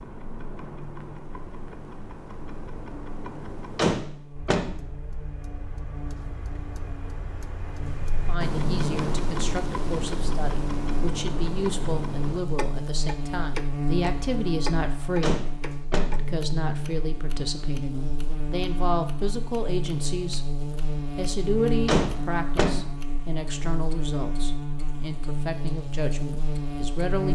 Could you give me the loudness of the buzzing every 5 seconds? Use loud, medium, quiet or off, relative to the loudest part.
quiet, medium, loud, loud, loud, loud.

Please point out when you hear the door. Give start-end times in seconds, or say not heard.
3.8-4.7, 15.2-16.1, 21.9-22.8.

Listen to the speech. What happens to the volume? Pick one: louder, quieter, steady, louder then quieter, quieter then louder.
steady.